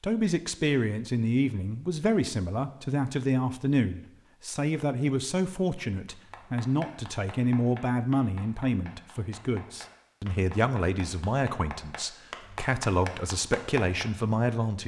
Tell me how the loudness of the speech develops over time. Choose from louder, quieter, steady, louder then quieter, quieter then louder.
steady.